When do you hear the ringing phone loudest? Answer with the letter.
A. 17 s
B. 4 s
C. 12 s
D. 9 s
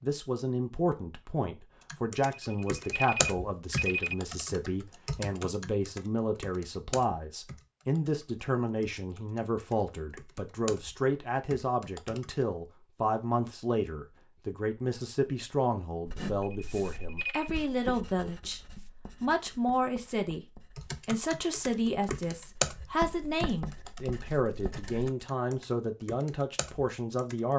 B.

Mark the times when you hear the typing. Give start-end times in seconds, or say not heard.
1.9-12.3, 20.8-27.5.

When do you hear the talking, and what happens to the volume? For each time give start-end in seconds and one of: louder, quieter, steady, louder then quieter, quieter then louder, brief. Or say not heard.
0.0-27.5 steady.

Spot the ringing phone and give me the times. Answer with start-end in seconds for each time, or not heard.
2.4-4.2, 16.4-17.5.